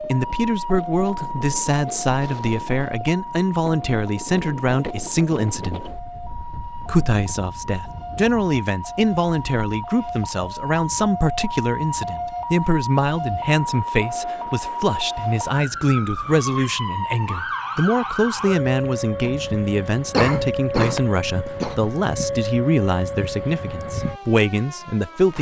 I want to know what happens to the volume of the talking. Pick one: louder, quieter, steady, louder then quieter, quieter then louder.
steady.